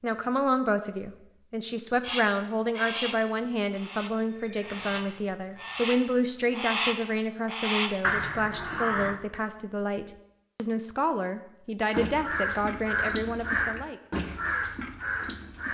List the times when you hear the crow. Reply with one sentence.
The crow can be heard from 2.0 to 9.2 s and from 11.9 to 15.6 s.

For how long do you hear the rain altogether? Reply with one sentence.
You can't hear the rain here.